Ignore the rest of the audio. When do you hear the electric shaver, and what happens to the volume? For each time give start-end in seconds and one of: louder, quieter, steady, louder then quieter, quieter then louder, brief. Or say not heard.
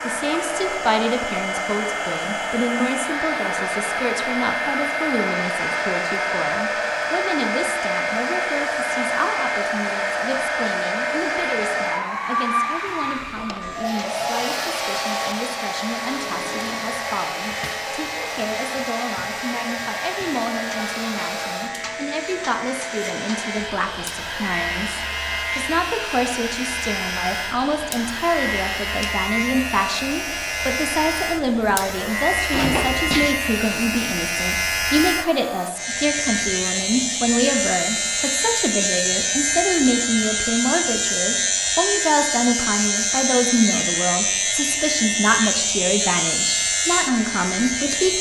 13.6-48.1 louder.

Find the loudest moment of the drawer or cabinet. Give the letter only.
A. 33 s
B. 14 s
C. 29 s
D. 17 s
A.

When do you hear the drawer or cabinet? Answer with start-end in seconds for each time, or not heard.
13.2-13.7, 16.1-17.9, 32.5-33.3.